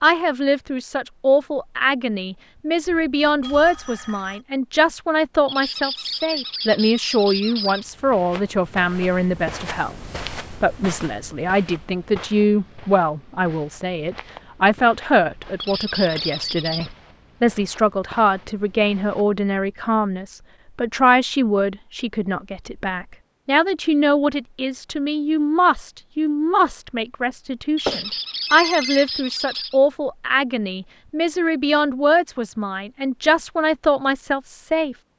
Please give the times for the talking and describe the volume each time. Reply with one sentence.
You can hear the talking from 0.0 to 35.0 s, at a steady volume.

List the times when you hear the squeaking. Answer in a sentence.
You can hear the squeaking from 5.5 to 7.8 s, from 15.6 to 16.9 s and from 27.8 to 29.8 s.